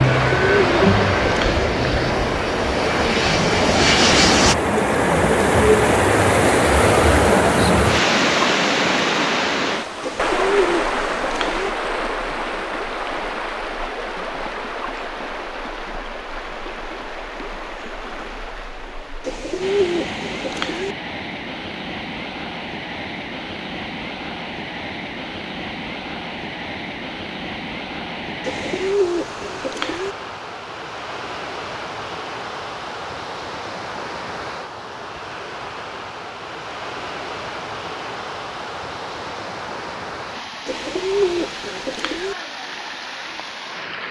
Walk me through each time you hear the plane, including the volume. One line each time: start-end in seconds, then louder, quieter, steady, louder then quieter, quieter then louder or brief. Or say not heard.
0.0-4.5 quieter then louder.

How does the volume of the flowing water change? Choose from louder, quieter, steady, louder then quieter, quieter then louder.
quieter.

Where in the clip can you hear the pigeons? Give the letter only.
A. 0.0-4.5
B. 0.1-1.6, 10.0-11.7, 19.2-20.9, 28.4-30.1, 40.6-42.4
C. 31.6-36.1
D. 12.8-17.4
B.